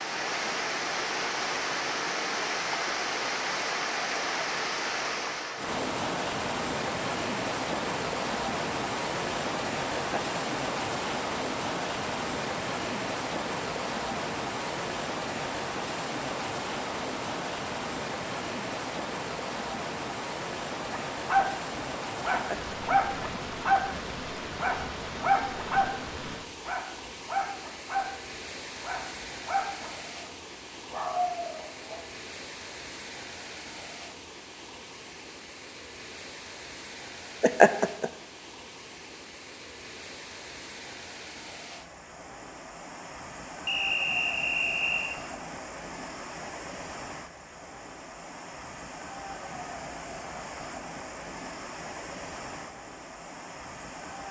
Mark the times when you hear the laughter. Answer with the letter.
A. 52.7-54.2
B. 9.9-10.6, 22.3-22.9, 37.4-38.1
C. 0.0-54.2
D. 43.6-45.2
B.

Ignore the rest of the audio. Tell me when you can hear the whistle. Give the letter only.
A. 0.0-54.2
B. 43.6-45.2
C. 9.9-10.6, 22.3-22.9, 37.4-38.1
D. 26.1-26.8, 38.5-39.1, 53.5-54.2
B.